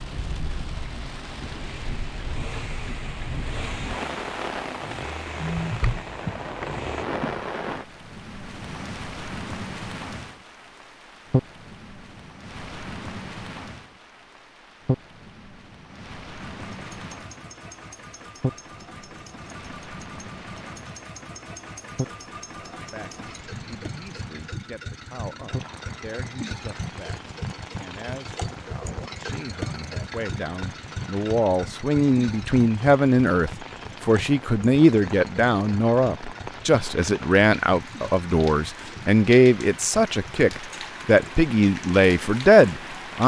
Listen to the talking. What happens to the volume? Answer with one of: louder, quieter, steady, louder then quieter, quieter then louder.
louder.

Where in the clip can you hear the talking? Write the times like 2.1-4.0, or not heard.
22.7-43.2.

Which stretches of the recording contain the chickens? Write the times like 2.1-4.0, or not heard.
not heard.